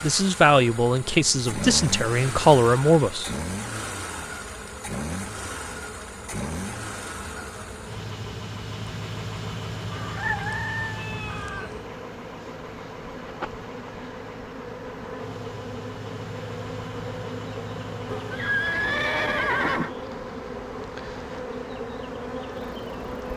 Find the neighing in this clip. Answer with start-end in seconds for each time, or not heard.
18.1-19.9.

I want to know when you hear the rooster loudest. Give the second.
10 s.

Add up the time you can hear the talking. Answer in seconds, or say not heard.
3 s.